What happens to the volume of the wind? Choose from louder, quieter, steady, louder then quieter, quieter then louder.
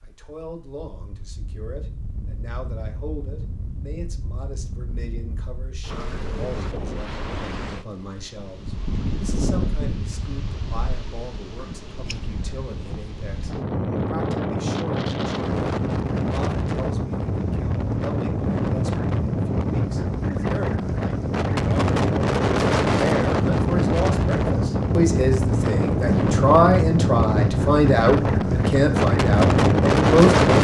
louder.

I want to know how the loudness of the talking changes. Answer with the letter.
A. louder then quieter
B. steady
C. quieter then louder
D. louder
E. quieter
D.